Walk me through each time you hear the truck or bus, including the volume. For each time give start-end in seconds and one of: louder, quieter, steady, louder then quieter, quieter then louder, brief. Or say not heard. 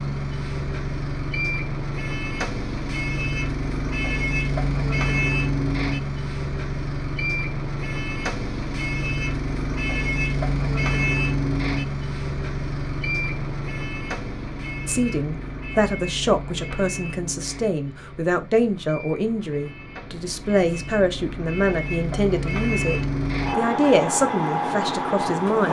0.0-25.6 quieter then louder.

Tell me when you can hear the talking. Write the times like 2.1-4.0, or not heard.
14.8-25.6.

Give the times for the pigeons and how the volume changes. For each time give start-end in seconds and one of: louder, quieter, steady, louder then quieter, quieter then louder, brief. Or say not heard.
not heard.